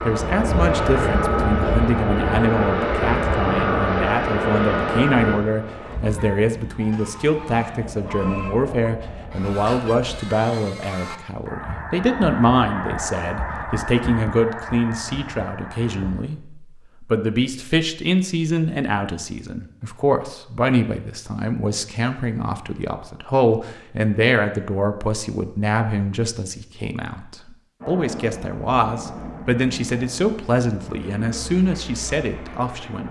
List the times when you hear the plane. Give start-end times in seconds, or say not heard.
0.0-10.2, 27.8-33.0.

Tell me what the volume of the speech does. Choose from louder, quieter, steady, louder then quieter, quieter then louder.
steady.